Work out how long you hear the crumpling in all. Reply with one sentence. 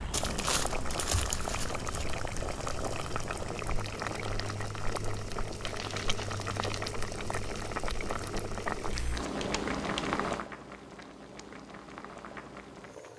The crumpling can be heard for 4 seconds in total.